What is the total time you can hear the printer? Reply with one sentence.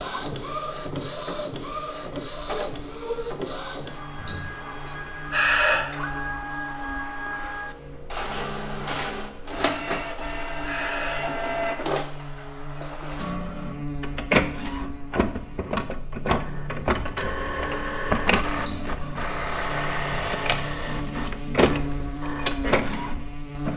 The printer can be heard for 24 seconds in total.